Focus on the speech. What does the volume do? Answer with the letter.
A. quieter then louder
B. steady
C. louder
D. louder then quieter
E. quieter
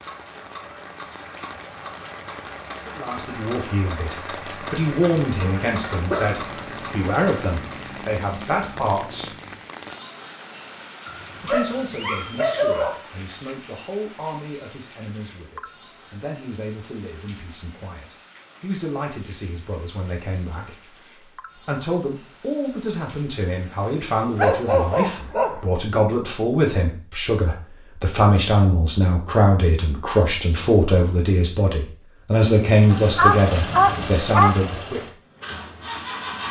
A.